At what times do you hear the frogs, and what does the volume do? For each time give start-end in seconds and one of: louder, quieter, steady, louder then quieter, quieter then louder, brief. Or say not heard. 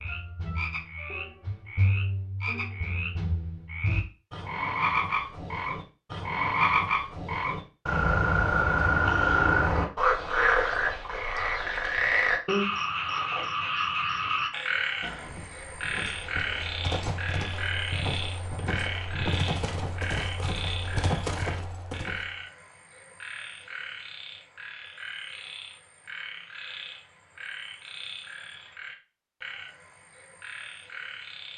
0.0-31.5 louder then quieter.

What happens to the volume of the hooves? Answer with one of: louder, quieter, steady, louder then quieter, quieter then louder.
louder.